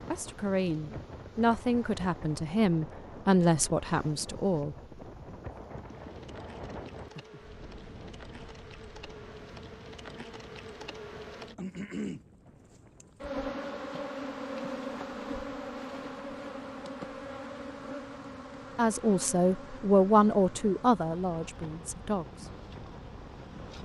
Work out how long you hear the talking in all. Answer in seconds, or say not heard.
8 s.